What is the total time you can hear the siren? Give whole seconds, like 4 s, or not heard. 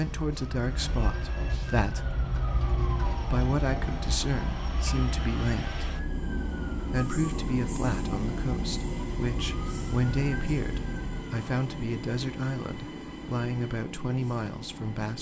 11 s.